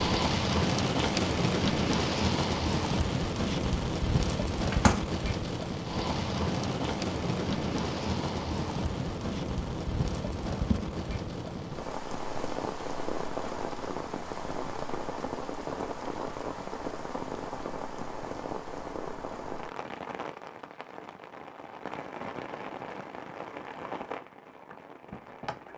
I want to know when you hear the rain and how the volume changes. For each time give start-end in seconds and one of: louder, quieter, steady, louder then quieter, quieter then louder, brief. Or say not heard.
0.0-25.7 quieter.